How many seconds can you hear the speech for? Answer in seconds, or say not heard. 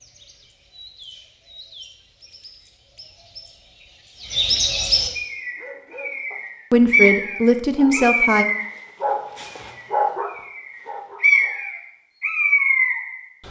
2 s.